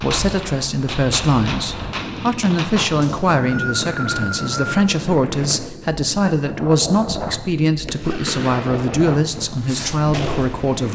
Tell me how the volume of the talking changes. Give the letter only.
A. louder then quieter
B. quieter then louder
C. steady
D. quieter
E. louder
C.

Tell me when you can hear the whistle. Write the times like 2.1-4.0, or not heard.
3.0-4.8.